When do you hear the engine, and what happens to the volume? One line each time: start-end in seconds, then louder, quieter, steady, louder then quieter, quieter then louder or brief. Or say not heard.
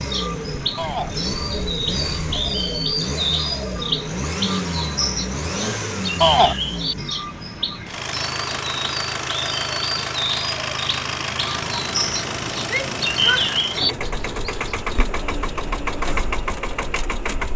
0.0-17.5 steady.